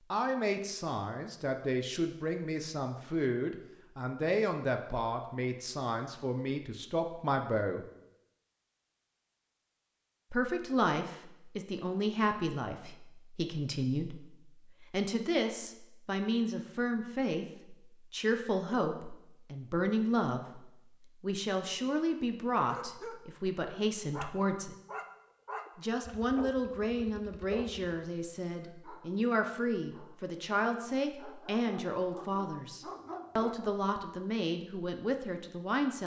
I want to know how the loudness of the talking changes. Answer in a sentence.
The volume of the talking stays about the same.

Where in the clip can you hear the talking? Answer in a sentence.
The talking can be heard from 0.1 to 7.8 s, from 10.3 to 24.8 s and from 25.8 to 36.0 s.